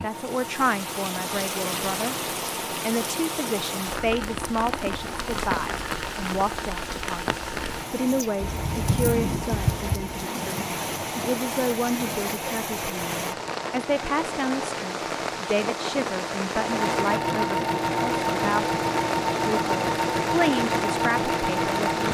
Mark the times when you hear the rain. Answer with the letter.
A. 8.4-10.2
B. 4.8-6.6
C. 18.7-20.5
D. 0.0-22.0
D.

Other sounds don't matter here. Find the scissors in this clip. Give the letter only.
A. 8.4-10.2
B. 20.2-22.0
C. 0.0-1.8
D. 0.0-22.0
A.